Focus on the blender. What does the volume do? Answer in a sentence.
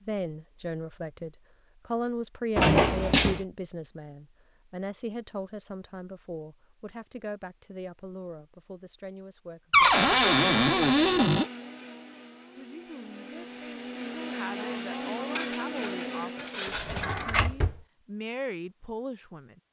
The volume of the blender goes down, then up.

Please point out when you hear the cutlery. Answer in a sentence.
The cutlery can be heard from 14.6 to 17.1 s.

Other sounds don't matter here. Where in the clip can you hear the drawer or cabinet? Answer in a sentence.
You can hear the drawer or cabinet from 2.5 to 3.4 s, from 9.7 to 11.4 s and from 16.6 to 17.8 s.